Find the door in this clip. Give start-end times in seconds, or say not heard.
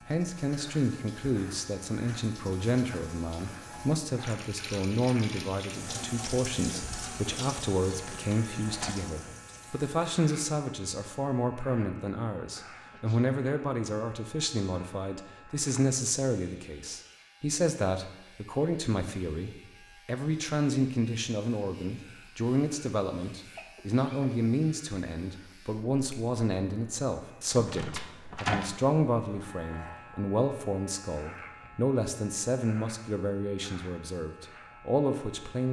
8.0-9.1, 27.5-28.8.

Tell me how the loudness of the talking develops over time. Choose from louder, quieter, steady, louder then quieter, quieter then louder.
steady.